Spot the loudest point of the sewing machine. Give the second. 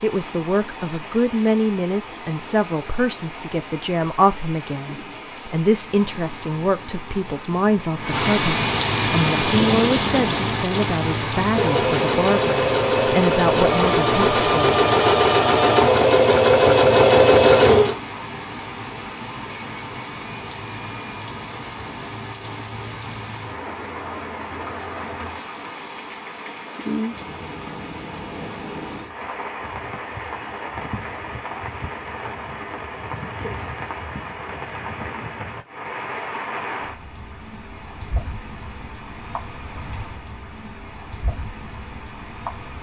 17 s.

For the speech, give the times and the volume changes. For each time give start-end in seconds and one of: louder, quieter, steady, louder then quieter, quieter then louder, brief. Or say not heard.
0.0-14.8 steady.